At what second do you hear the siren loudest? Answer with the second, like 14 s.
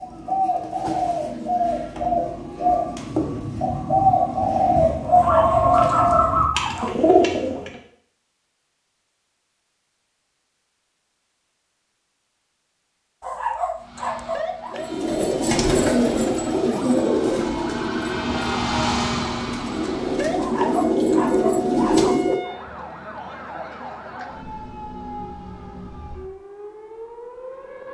19 s.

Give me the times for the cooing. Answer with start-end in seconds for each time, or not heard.
0.0-7.8, 14.7-22.7.